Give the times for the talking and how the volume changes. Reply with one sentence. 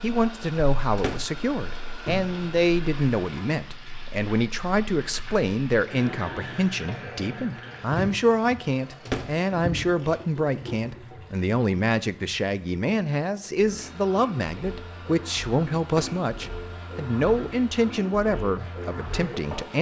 The talking can be heard from 0.0 to 19.7 s, at a steady volume.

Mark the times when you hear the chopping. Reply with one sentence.
You can't hear the chopping here.